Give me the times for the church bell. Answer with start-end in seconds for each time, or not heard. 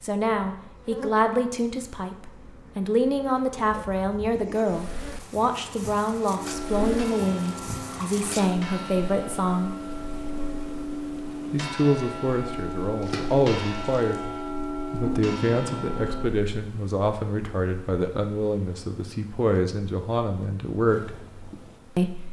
6.3-16.2.